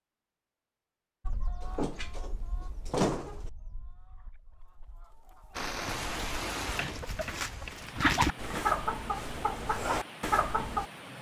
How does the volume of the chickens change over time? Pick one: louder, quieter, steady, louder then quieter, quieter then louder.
quieter then louder.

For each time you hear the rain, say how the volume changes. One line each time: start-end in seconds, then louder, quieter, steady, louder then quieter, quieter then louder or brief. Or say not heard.
5.5-11.1 quieter.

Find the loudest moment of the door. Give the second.
3 s.